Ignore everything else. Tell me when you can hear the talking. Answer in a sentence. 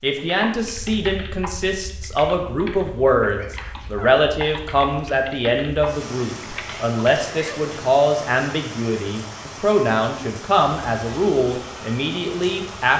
The talking can be heard from 0.0 to 12.9 s.